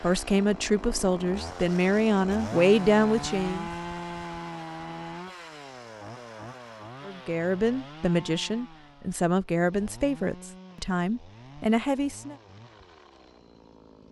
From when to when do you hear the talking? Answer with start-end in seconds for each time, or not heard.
0.0-3.7, 7.0-12.3.